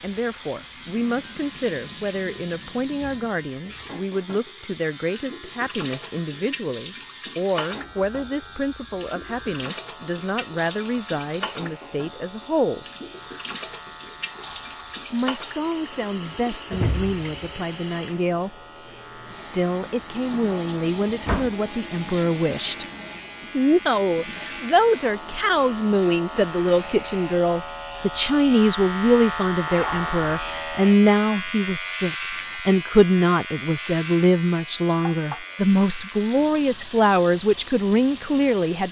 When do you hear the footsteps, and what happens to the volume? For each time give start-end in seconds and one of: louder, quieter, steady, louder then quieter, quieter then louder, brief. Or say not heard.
not heard.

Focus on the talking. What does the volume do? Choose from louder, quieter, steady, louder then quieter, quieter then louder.
louder.